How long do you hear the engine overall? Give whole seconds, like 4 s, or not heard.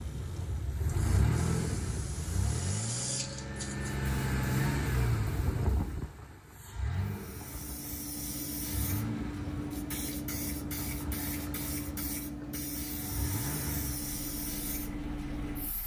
16 s.